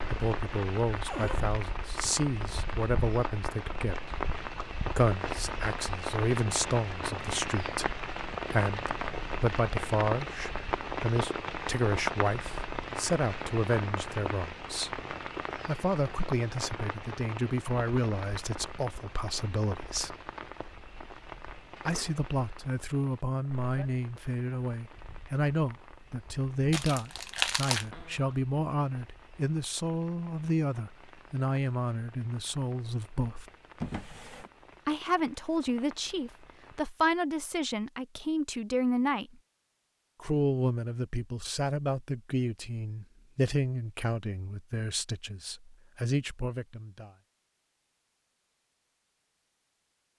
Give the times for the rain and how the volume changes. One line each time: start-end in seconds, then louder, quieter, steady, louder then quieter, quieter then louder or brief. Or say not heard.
0.0-36.9 quieter.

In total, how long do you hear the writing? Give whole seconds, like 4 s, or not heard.
not heard.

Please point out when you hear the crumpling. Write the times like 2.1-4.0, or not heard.
26.7-27.9.